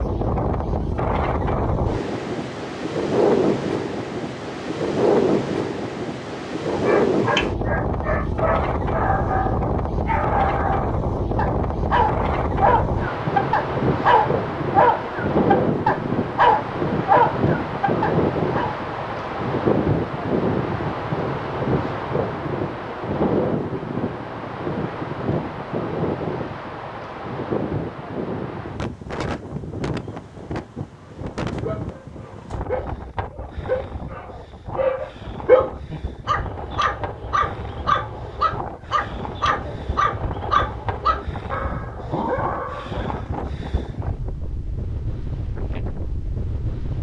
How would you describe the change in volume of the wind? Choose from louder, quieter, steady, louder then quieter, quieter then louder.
quieter.